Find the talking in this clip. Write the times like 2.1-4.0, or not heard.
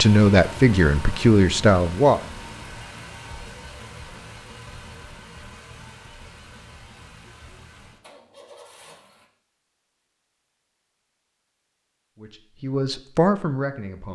0.0-2.2, 12.2-14.1.